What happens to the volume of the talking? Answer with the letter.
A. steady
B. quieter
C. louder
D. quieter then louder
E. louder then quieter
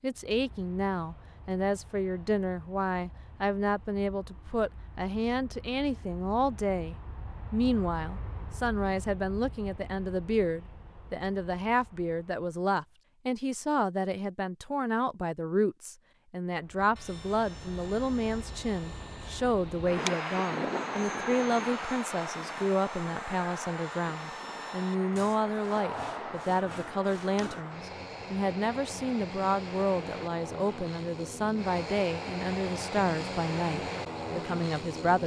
A.